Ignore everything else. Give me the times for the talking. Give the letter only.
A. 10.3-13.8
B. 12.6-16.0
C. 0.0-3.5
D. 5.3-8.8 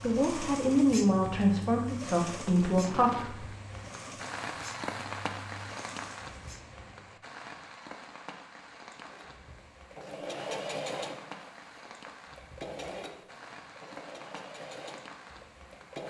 C.